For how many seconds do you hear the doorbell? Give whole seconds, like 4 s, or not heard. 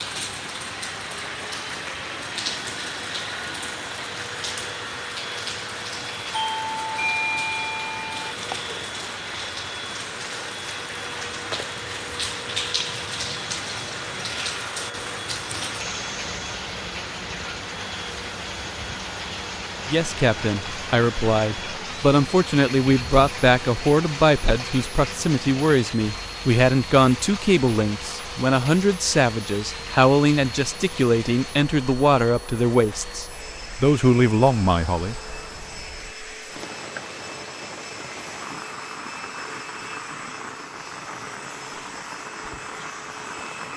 2 s.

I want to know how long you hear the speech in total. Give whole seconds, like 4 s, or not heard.
15 s.